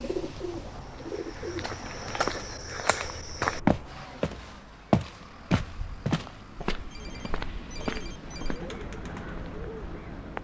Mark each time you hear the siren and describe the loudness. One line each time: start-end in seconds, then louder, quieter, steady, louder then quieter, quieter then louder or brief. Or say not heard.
not heard.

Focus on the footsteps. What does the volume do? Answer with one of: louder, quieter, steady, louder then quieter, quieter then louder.
louder then quieter.